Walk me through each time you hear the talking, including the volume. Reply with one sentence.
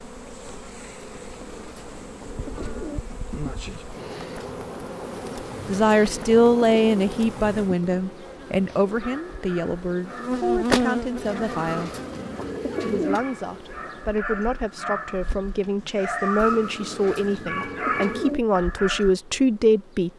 The talking can be heard from 5.7 to 11.9 s, getting quieter; and from 12.8 to 20.1 s, getting louder.